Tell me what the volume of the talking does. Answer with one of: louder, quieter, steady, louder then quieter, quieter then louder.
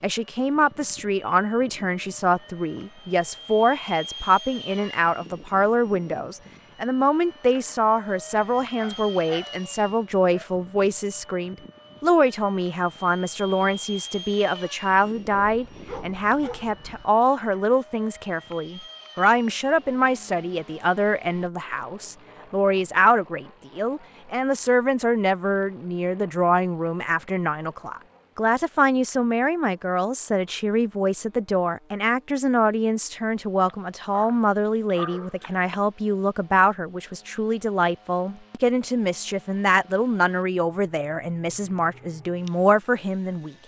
steady.